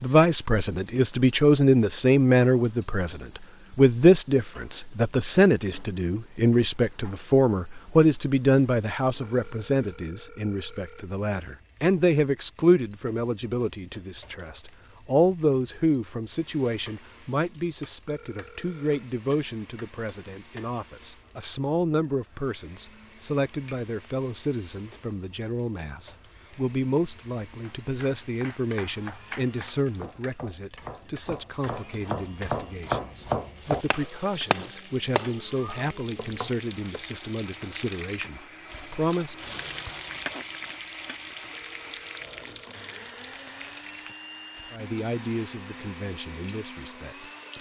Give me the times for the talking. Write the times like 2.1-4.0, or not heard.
0.0-39.5, 44.7-47.5.